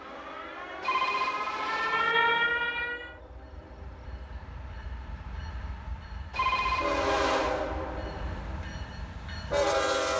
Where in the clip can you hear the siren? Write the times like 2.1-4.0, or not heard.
0.0-3.2.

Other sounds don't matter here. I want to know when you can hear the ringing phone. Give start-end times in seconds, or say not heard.
0.8-2.1, 6.3-7.5.